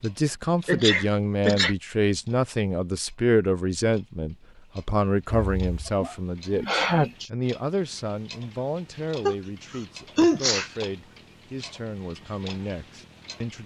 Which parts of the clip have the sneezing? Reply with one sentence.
The sneezing can be heard from 0.7 to 1.8 s, from 5.3 to 7.3 s and from 9.2 to 10.7 s.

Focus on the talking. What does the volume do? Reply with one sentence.
The loudness of the talking goes down.